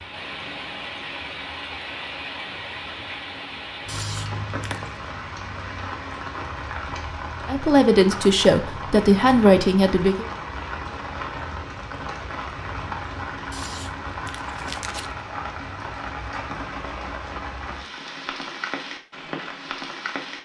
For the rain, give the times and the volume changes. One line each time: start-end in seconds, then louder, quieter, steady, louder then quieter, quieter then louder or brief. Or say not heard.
0.0-20.4 steady.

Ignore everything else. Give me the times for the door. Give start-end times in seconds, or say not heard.
not heard.